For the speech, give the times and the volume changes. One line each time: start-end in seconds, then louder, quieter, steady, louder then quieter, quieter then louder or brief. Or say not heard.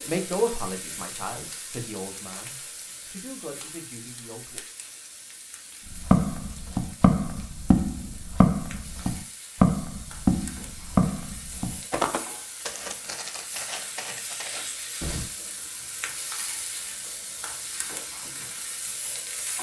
0.0-4.7 quieter.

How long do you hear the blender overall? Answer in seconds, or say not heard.
not heard.